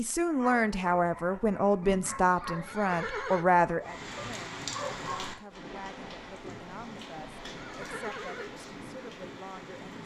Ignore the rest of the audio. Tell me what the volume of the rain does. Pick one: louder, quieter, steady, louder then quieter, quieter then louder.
quieter.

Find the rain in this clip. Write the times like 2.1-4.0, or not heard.
3.8-10.0.